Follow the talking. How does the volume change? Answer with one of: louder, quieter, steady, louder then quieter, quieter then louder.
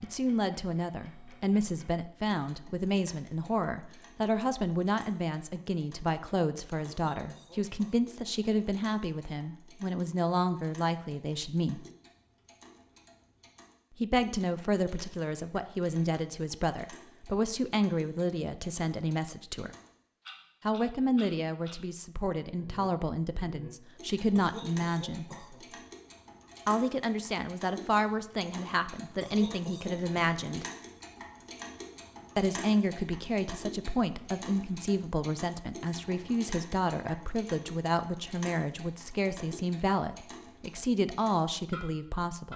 steady.